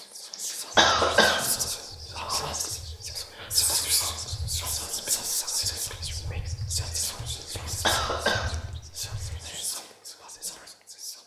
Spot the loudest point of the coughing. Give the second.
1 s.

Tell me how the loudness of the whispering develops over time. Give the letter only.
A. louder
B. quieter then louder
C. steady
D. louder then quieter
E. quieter
E.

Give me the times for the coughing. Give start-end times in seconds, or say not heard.
0.3-1.5, 7.4-8.6.